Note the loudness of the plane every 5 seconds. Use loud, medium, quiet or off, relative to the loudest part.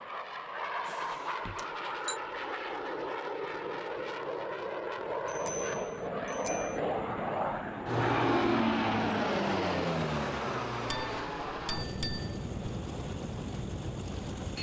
medium, loud, medium.